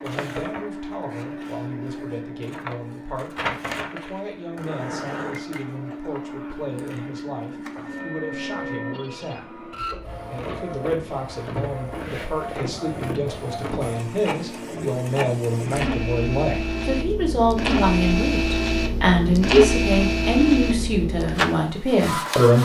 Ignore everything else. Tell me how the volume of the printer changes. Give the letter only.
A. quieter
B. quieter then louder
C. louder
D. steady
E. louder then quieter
C.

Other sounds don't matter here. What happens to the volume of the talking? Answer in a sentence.
The loudness of the talking goes up.